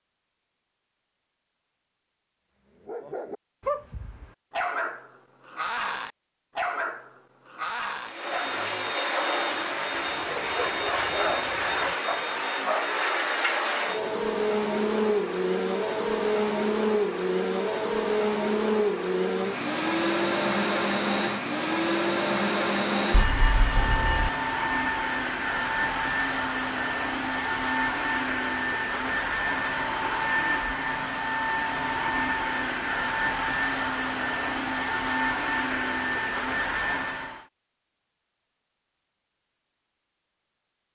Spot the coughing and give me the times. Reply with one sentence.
You can't hear the coughing here.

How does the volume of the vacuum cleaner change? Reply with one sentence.
The volume of the vacuum cleaner stays about the same.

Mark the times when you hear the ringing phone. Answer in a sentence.
The ringing phone can be heard from 23.1 to 24.3 s.